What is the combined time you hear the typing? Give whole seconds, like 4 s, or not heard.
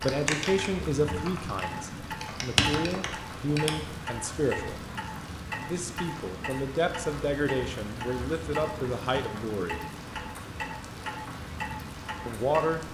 4 s.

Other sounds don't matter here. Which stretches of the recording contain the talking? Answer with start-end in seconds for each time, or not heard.
0.0-4.8, 5.7-9.8, 12.2-12.8.